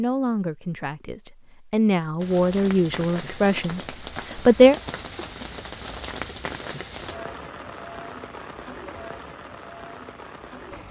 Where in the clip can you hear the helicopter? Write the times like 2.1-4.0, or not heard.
not heard.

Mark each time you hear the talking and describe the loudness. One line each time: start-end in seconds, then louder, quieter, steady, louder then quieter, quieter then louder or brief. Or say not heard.
0.0-4.8 louder then quieter.